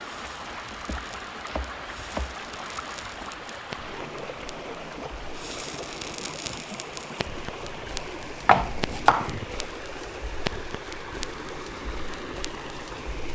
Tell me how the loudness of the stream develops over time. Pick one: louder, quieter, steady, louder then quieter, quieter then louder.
steady.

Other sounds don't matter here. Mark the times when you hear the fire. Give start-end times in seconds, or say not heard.
0.0-13.2.